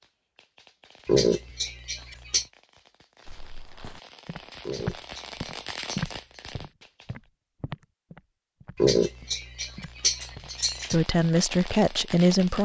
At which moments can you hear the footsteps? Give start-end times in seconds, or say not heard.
3.2-11.1.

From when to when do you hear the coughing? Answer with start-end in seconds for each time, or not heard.
1.1-2.5, 4.7-6.5, 8.8-10.9.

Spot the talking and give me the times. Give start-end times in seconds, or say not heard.
10.9-12.6.